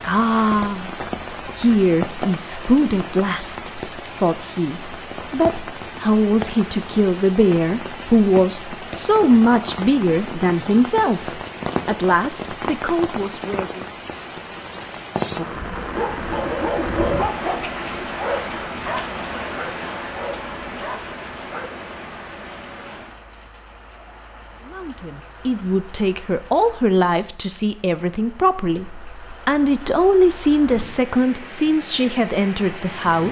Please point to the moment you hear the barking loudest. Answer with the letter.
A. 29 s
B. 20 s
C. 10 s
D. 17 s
D.